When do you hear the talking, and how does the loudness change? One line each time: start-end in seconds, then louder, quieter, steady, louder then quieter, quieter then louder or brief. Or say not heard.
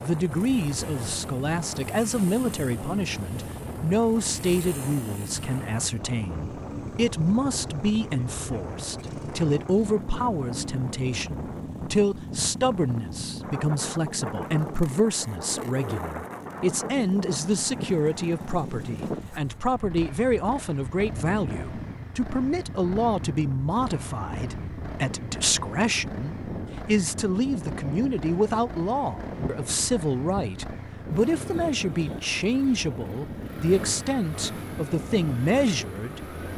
0.0-36.4 steady.